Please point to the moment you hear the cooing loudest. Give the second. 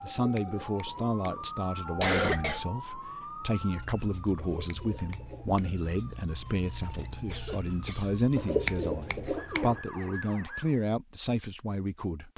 9 s.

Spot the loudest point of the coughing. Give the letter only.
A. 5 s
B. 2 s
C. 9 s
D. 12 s
B.